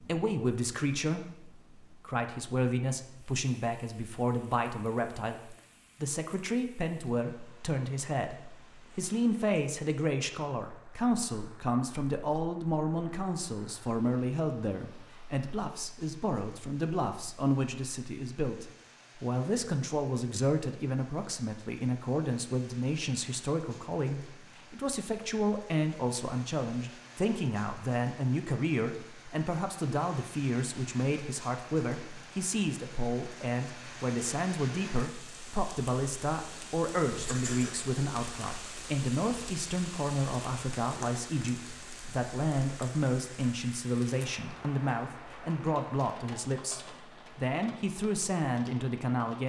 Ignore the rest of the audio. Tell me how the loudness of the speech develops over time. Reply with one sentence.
The loudness of the speech stays about the same.